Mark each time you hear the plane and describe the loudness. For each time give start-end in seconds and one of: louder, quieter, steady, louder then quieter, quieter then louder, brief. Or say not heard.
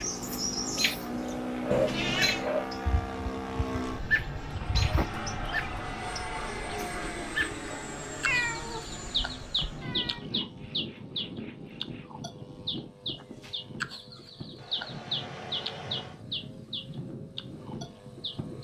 0.0-18.5 quieter.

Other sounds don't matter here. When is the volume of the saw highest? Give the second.
2 s.